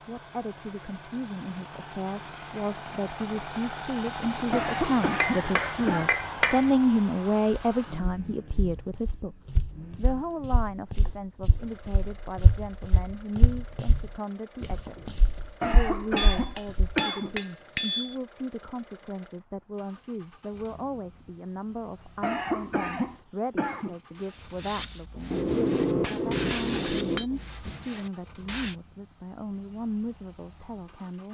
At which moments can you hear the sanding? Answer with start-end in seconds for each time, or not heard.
22.9-28.8.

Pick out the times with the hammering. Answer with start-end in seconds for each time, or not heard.
5.1-6.7, 16.1-18.1, 25.3-27.2.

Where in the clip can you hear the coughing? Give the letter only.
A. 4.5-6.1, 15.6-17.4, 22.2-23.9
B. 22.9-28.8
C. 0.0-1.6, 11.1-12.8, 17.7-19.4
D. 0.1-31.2
A.